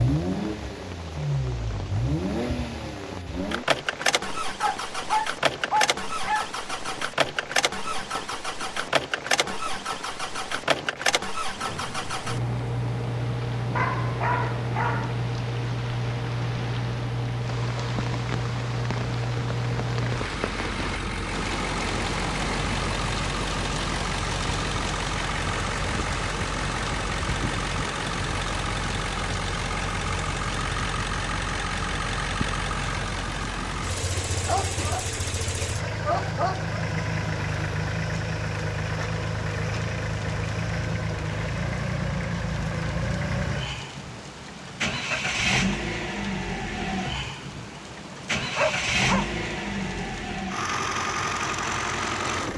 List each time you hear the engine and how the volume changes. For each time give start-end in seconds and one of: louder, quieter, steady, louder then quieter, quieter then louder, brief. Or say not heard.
0.0-52.5 steady.